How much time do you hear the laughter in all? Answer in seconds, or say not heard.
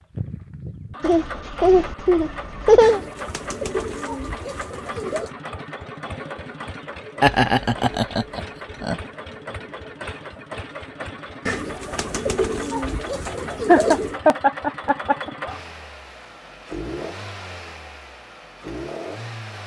6 s.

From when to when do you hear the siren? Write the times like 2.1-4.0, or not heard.
not heard.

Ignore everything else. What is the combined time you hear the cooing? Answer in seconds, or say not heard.
5 s.